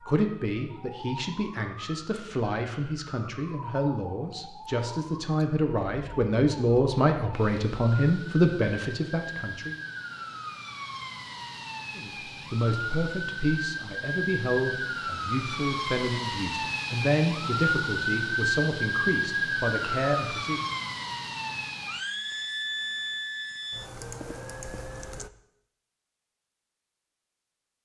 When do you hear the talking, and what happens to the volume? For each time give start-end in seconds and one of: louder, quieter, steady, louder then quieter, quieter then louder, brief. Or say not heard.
0.0-9.8 louder
11.9-20.6 steady.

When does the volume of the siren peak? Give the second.
18 s.